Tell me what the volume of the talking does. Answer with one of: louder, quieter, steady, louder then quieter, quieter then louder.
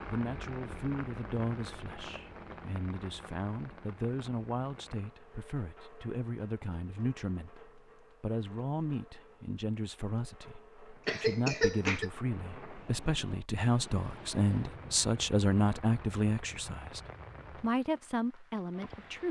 louder.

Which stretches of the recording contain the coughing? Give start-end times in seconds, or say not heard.
11.1-12.1.